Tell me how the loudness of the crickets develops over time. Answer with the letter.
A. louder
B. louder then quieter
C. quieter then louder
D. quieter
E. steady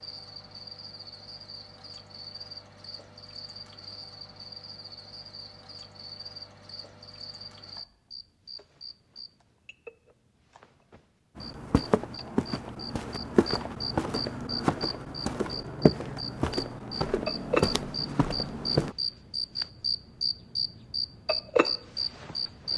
A.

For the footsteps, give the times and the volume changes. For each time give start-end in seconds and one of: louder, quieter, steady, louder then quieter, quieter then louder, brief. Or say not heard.
11.3-18.9 steady.